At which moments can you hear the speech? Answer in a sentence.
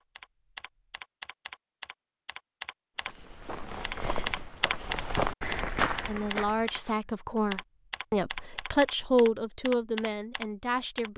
The speech can be heard from 6.0 to 11.1 s.